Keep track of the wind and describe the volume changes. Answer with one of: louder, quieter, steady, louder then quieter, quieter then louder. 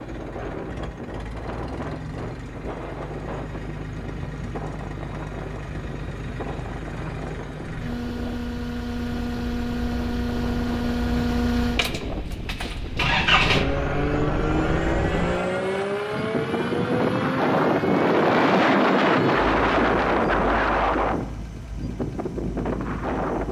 louder.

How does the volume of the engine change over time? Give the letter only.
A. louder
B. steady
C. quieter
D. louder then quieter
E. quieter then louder
D.